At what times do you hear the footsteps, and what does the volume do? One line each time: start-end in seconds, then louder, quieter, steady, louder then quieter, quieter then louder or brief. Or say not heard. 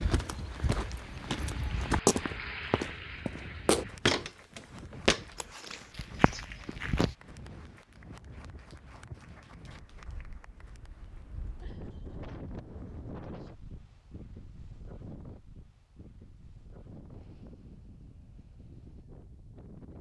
0.0-7.2 louder then quieter.